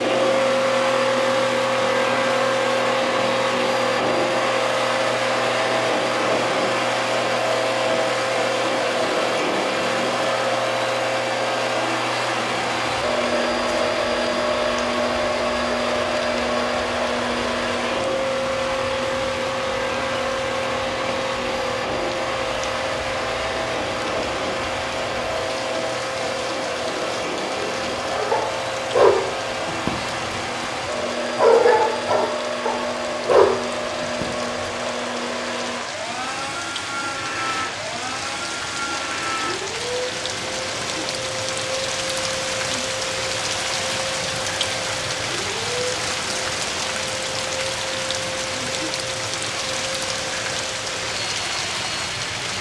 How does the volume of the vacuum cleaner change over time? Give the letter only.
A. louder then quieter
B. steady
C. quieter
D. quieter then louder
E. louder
C.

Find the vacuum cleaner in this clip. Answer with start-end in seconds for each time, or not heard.
0.0-52.4.